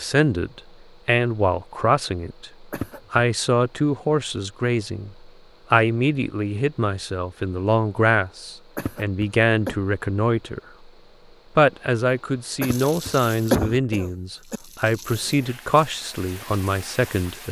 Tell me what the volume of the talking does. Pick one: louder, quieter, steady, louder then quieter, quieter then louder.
steady.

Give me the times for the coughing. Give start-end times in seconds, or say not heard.
2.7-3.2, 8.8-9.8, 12.6-14.6.